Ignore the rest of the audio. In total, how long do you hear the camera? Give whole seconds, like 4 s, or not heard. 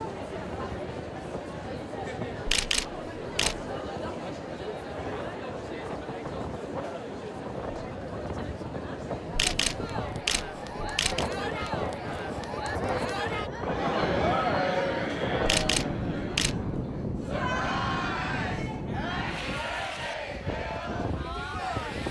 4 s.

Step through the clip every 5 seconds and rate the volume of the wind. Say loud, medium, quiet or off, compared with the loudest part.
medium, medium, loud, loud, loud.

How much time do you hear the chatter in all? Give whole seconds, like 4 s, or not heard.
22 s.